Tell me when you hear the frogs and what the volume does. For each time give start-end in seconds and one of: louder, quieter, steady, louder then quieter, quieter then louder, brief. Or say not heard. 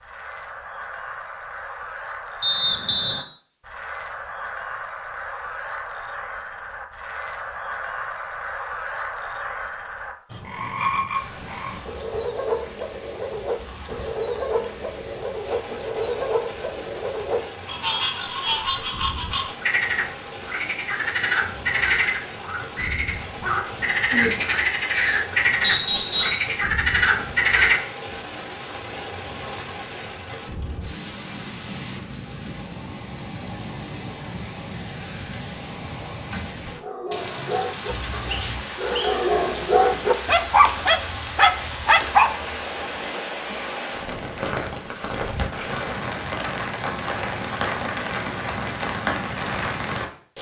0.0-27.8 louder.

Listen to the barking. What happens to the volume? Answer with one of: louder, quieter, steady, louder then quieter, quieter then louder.
louder.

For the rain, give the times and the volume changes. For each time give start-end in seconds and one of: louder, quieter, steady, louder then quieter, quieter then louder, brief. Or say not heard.
11.1-50.3 louder.